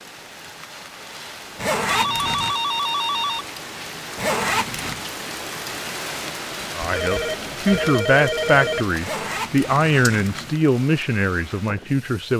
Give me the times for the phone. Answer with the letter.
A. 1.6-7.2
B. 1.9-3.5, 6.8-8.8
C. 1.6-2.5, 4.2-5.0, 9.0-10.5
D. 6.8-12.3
B.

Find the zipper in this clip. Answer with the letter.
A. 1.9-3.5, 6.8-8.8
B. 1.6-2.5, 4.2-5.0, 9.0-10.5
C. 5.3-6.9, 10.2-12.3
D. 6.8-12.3
B.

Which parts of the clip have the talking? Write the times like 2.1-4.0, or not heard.
6.8-12.3.